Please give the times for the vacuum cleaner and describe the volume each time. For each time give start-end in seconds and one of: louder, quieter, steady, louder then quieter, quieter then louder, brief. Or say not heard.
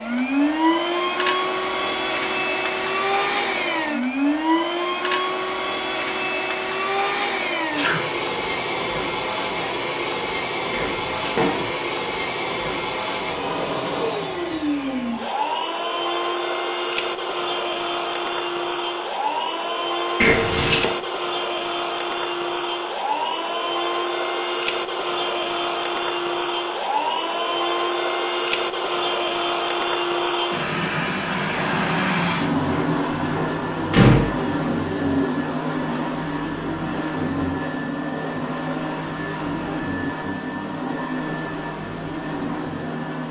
0.0-43.2 steady.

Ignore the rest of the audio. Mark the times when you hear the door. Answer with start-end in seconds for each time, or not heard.
10.7-11.8, 20.2-20.9, 32.7-34.4.